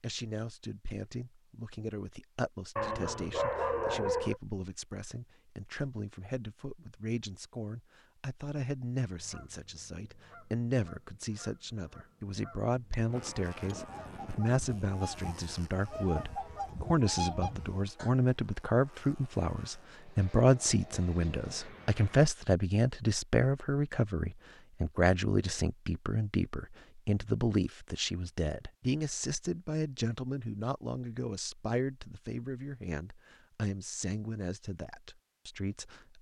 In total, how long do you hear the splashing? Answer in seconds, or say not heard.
not heard.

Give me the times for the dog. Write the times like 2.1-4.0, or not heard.
2.8-4.4.